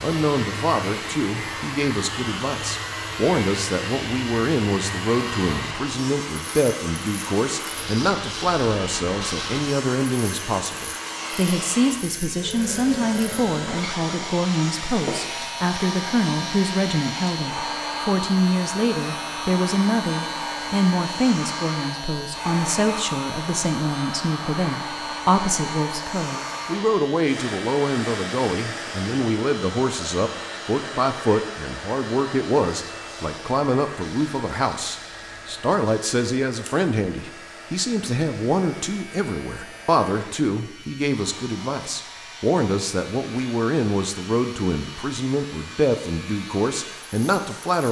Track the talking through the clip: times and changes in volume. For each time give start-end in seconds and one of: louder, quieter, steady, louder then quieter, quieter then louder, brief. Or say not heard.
0.0-47.8 steady.